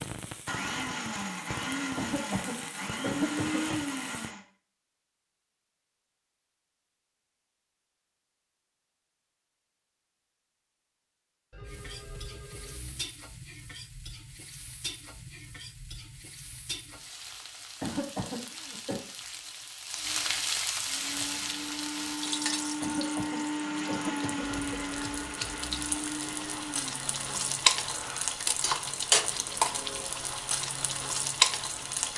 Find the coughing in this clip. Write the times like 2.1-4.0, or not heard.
1.9-3.8, 17.8-19.0, 22.8-24.8.